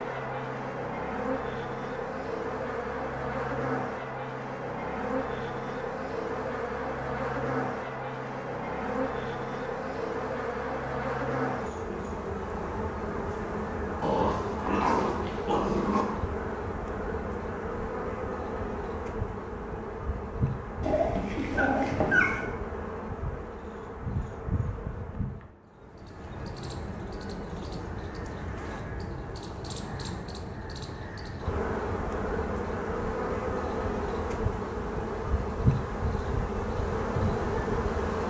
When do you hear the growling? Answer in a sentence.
You can hear the growling from 14.0 to 16.1 s and from 20.8 to 22.5 s.